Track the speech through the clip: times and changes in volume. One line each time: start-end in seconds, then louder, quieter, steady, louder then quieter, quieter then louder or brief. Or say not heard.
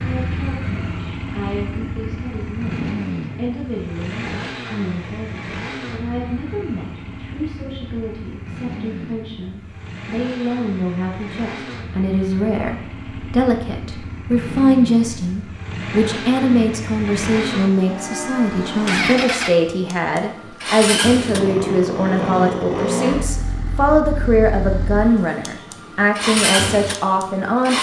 0.0-27.7 louder.